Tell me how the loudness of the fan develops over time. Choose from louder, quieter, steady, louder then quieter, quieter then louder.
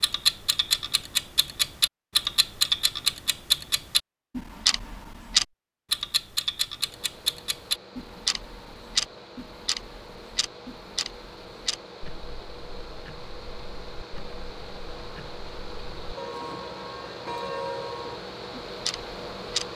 louder.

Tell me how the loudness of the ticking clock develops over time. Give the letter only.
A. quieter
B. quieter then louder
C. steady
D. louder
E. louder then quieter
B.